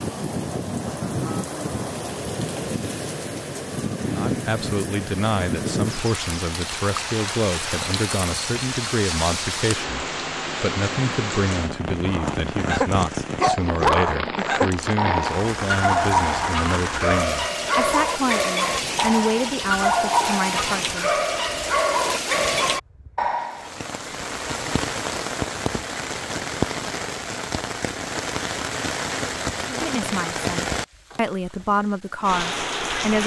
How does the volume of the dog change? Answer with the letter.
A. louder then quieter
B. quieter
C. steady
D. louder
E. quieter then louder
C.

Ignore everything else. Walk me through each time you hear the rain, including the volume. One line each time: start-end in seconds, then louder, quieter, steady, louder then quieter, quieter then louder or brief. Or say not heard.
0.0-33.2 steady.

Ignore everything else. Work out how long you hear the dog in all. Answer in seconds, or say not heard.
12 s.